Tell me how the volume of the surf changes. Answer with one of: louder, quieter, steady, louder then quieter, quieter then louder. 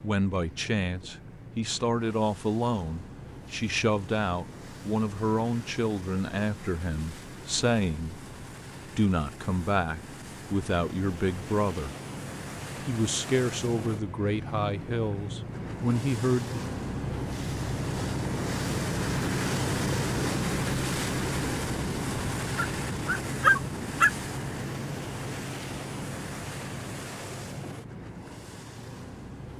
louder then quieter.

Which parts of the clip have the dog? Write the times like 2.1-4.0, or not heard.
22.6-24.1.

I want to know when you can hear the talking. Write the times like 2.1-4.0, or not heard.
0.0-8.2, 8.9-11.9, 12.8-16.6.